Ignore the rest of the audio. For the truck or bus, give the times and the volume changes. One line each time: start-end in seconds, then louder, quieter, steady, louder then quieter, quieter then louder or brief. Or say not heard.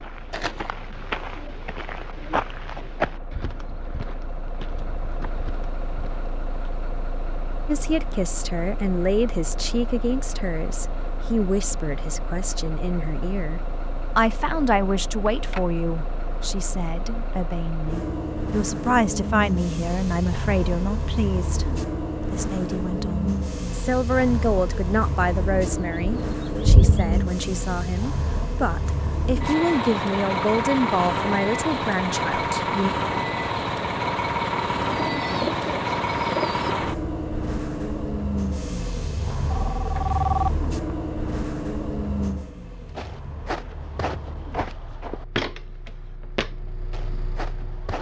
0.0-47.9 louder then quieter.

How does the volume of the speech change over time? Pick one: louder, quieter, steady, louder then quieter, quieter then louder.
steady.